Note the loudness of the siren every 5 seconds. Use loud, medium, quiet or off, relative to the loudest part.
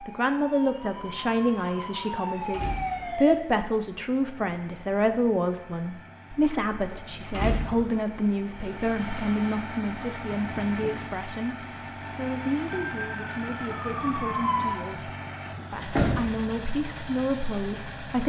loud, off, loud, off.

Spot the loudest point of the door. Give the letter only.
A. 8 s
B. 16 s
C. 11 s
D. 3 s
B.